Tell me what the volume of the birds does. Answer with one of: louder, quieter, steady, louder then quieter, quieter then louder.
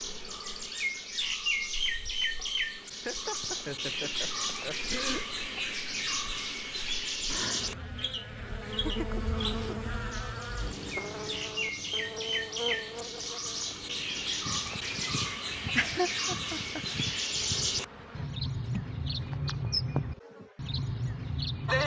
steady.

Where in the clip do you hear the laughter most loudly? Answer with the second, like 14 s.
16 s.